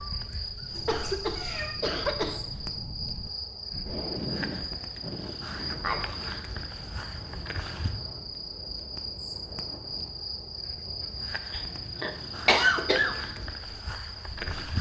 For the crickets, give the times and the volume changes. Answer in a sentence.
The crickets can be heard from 0.0 to 14.7 s, at a steady volume.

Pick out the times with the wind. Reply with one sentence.
You can hear the wind from 0.0 to 14.7 s.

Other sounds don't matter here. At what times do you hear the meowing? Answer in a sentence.
You can hear the meowing from 0.7 to 1.8 s.